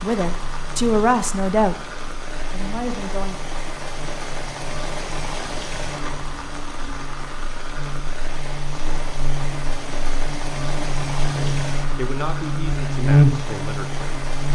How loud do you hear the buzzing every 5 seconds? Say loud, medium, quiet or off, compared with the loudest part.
quiet, quiet, loud.